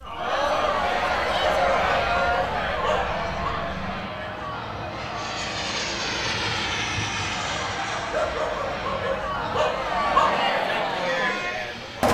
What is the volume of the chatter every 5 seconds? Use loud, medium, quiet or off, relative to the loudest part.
loud, medium, loud.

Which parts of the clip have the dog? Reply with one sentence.
The dog can be heard from 1.4 to 3.5 s and from 8.1 to 10.3 s.